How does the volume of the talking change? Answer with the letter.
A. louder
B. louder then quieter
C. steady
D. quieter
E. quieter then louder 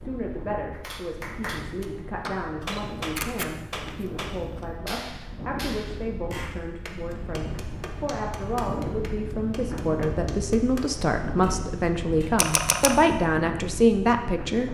A.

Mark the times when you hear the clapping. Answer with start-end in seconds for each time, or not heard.
0.7-12.4.